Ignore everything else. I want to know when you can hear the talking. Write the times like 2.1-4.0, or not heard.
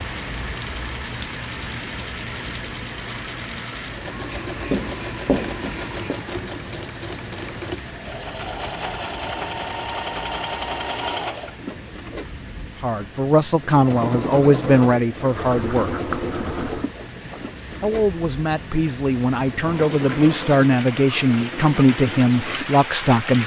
12.8-15.9, 17.8-23.4.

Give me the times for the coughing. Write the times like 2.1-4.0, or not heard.
not heard.